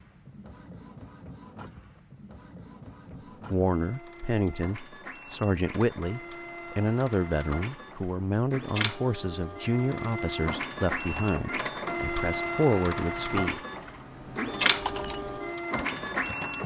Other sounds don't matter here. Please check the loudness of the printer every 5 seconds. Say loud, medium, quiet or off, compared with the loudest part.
quiet, medium, loud, loud.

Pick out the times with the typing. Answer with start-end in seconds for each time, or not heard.
13.8-16.6.